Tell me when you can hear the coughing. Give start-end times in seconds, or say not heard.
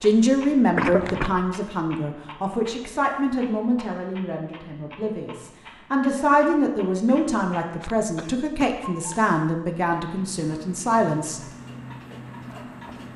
0.8-1.4, 7.0-8.8.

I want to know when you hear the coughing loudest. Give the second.
1 s.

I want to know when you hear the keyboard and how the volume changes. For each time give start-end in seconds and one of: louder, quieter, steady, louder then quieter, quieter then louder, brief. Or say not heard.
not heard.